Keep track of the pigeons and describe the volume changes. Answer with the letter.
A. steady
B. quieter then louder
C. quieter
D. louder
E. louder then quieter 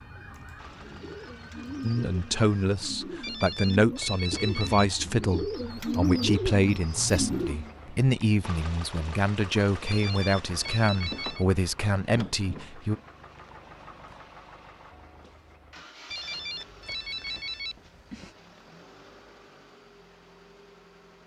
D.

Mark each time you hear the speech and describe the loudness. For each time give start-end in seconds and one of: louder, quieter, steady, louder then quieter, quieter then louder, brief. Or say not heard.
1.8-13.0 steady.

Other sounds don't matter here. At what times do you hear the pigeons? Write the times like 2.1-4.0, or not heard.
0.1-7.7.